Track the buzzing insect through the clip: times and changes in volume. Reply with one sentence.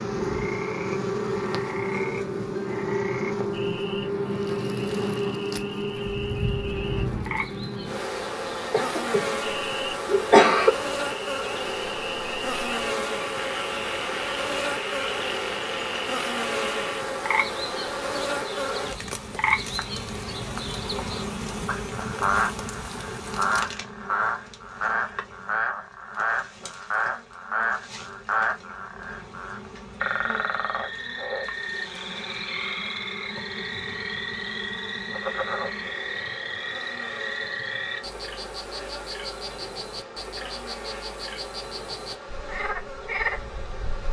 The buzzing insect can be heard from 0.0 to 44.0 s, getting quieter.